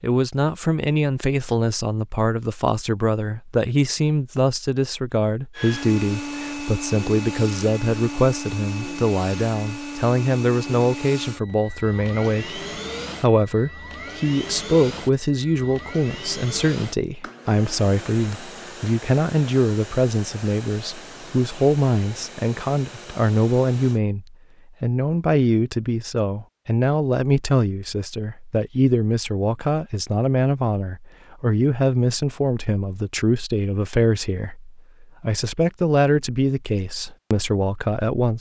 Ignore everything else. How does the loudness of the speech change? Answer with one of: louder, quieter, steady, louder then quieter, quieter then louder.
steady.